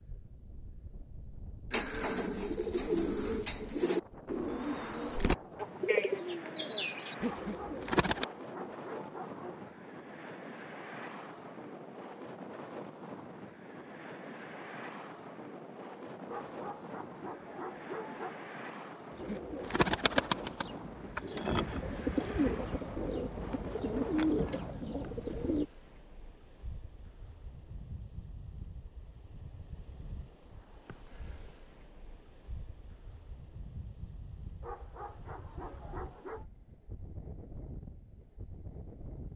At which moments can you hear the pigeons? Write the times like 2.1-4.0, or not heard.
1.7-8.2, 19.1-25.6.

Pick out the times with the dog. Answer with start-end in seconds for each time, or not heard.
7.4-9.8, 16.2-18.5, 34.6-36.5.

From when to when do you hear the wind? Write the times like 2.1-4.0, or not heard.
0.0-39.3.